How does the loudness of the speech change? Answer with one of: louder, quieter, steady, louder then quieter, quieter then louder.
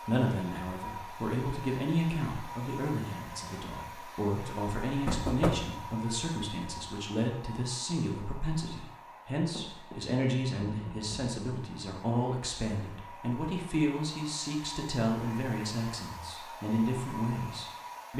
steady.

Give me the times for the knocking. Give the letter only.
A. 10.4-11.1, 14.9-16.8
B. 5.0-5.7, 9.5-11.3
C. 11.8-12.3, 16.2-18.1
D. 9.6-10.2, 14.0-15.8
B.